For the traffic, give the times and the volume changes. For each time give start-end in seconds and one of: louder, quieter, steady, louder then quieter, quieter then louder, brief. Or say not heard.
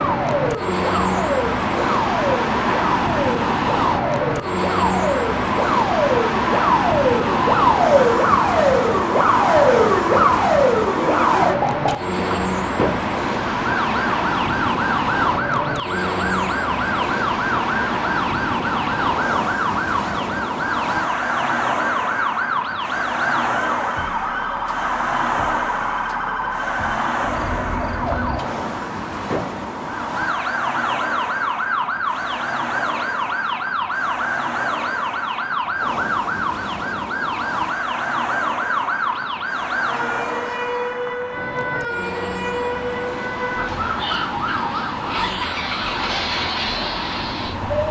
0.0-47.8 quieter.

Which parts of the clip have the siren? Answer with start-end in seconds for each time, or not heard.
0.0-47.8.